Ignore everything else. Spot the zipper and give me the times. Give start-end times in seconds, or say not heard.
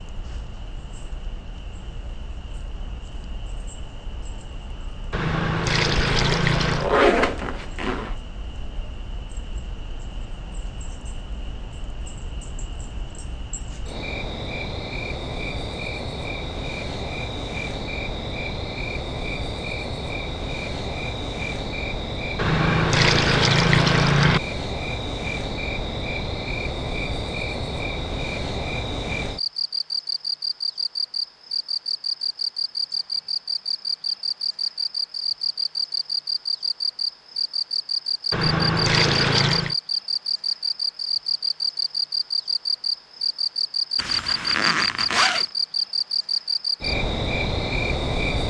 6.1-8.2, 44.0-45.5.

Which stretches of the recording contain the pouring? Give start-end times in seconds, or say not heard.
5.1-6.9, 22.4-24.4, 38.3-39.8.